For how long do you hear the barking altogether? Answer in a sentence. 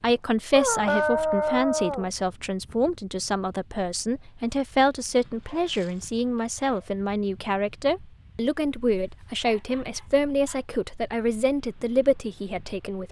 The barking can be heard for 5 seconds in total.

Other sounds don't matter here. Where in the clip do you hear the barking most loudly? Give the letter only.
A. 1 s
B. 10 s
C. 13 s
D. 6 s
A.